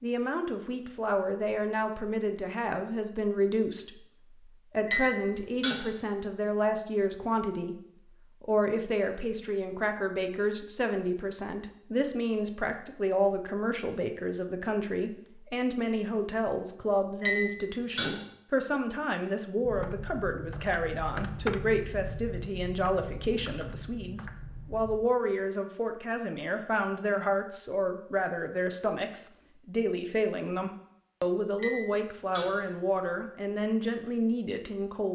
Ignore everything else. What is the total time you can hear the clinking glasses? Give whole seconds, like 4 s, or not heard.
3 s.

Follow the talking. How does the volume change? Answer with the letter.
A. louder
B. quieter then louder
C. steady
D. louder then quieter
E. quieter
C.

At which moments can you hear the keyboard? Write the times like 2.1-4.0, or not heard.
19.6-25.0.